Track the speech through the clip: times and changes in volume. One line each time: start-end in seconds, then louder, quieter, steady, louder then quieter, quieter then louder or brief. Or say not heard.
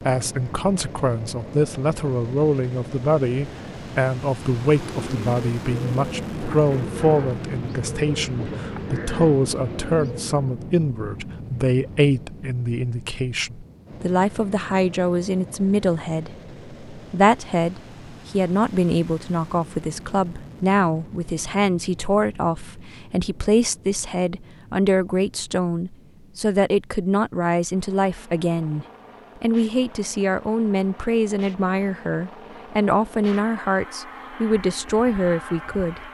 0.0-36.0 steady.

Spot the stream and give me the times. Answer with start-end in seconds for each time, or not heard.
not heard.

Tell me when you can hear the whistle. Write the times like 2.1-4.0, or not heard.
not heard.